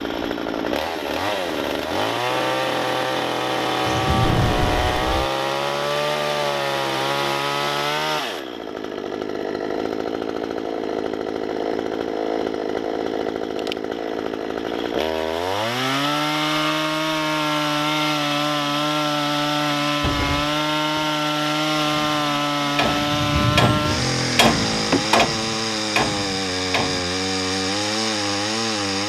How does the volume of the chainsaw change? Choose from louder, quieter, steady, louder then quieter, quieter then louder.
steady.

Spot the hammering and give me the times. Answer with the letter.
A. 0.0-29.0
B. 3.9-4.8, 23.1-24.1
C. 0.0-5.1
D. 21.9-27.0
D.